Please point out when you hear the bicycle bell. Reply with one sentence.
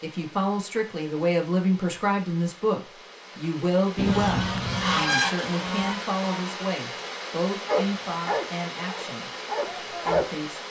You can't hear the bicycle bell here.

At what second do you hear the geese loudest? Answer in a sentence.
The volume of the geese peaks at 5 seconds.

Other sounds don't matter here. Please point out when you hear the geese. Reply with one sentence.
The geese can be heard from 4.0 to 6.6 s.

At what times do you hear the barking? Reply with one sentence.
The barking can be heard from 7.7 to 10.2 s.